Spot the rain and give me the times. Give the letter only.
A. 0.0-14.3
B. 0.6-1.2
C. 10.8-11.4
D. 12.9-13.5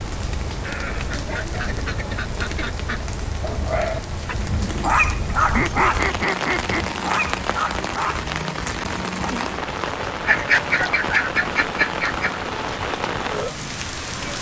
A.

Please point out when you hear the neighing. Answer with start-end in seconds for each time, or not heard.
0.6-1.2.